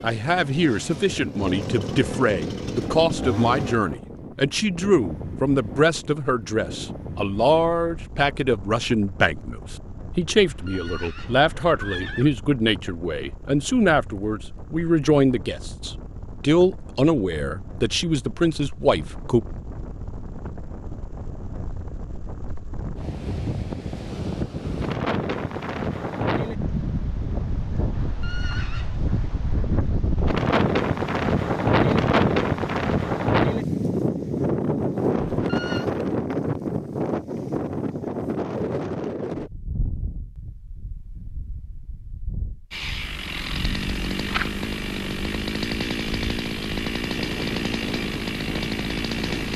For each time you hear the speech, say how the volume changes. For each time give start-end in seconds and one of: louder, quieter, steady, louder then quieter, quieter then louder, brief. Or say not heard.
0.0-19.4 steady.